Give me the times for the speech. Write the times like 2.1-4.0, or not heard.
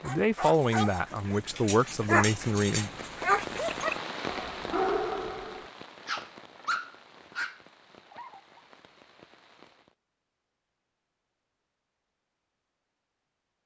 0.0-2.9.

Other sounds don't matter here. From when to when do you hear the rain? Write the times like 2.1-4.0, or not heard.
0.0-9.9.